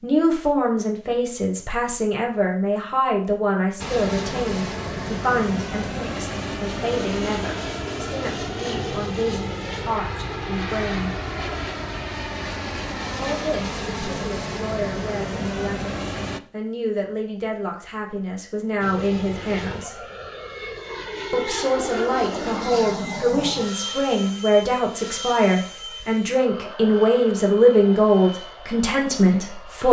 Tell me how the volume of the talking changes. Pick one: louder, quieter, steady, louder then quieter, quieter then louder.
quieter then louder.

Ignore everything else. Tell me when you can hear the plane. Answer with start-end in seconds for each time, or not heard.
3.8-16.4, 18.8-29.8.